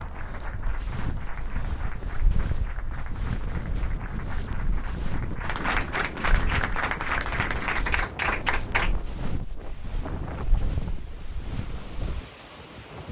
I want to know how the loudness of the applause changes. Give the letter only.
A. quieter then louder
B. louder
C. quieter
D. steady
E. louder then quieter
B.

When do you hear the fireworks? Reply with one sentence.
The fireworks can't be heard in this clip.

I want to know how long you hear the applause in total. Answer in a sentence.
You can hear the applause for 9 seconds altogether.